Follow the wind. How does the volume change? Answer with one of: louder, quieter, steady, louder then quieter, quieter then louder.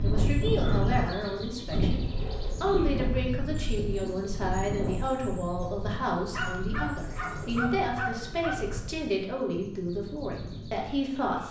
quieter.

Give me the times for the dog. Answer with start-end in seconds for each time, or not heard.
0.6-1.8, 6.3-8.6.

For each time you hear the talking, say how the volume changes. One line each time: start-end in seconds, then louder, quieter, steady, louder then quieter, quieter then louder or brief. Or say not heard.
0.0-11.4 steady.